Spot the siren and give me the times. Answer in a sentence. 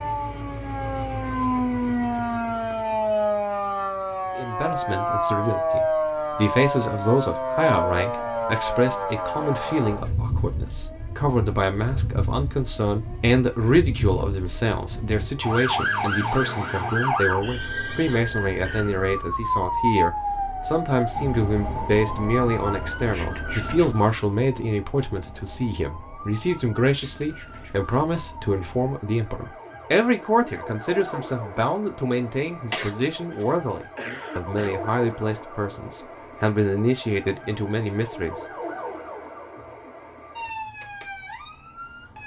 You can hear the siren from 0.0 to 42.2 s.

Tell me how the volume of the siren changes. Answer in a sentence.
The volume of the siren goes down.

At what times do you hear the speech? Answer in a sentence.
You can hear the speech from 4.3 to 38.5 s.